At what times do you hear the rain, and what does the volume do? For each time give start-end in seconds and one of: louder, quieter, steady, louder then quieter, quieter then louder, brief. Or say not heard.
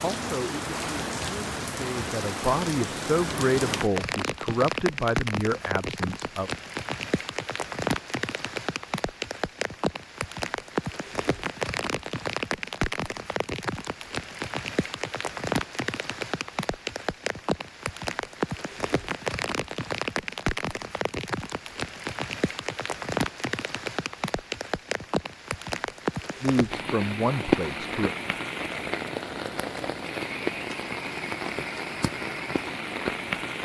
0.0-33.5 steady.